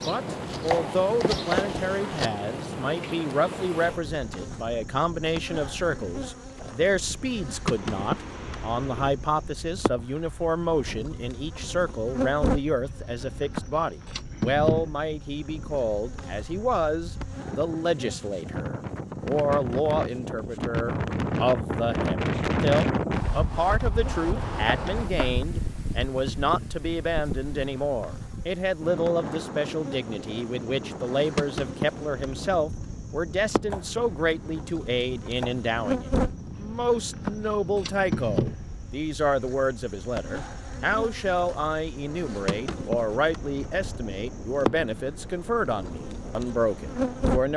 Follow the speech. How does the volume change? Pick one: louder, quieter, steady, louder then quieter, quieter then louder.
steady.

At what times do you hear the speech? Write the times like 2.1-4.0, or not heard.
0.0-47.5.